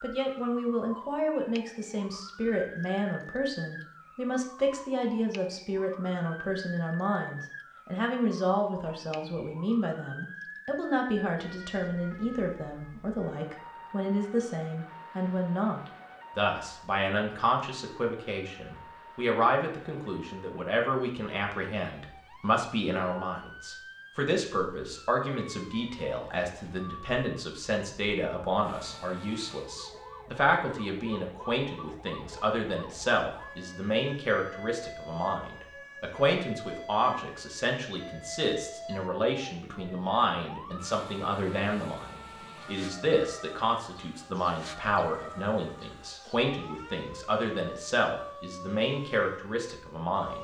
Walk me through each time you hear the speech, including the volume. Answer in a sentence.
The speech can be heard from 0.0 to 50.3 s, at a steady volume.